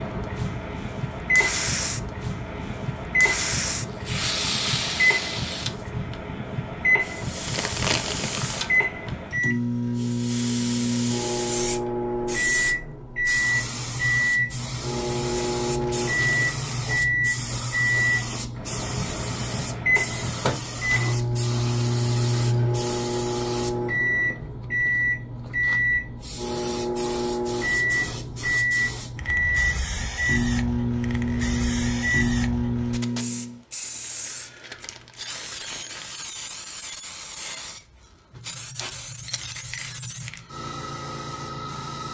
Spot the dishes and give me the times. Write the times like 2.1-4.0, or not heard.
not heard.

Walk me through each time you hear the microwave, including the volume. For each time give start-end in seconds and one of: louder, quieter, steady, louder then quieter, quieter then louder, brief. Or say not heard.
0.0-33.6 steady.